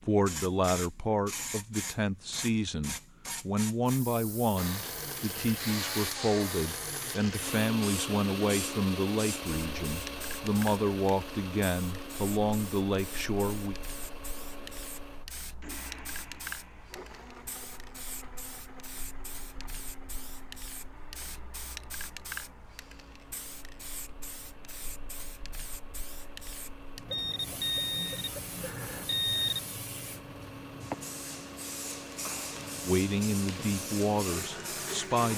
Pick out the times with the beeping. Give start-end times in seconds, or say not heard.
27.1-29.6.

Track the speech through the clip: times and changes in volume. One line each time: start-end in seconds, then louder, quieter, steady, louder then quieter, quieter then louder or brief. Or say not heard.
0.0-13.8 steady
32.9-35.3 brief.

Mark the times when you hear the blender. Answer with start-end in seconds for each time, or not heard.
4.5-35.3.